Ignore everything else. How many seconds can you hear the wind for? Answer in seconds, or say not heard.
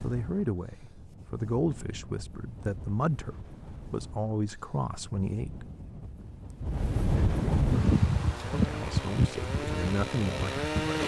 11 s.